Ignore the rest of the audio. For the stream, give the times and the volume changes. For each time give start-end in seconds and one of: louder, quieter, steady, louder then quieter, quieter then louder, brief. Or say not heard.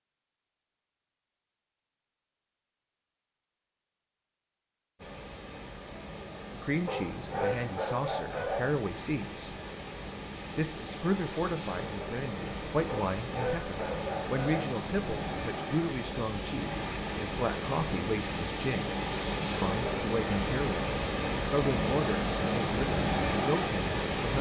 5.0-24.3 louder.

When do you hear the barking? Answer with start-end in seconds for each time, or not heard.
6.8-8.8, 12.8-14.7.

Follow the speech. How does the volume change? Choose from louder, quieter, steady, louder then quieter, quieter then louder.
steady.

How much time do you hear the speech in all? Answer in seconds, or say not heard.
16 s.